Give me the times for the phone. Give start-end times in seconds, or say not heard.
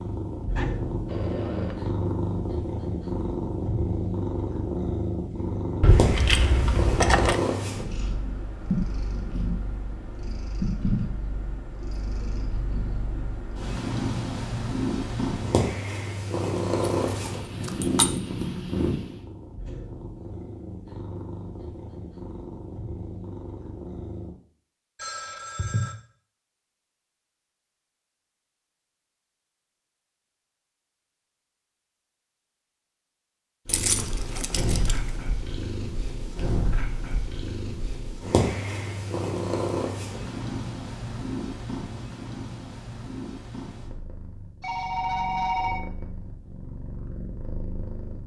0.6-1.9, 25.0-25.9, 44.6-45.9.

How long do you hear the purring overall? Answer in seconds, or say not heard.
39 s.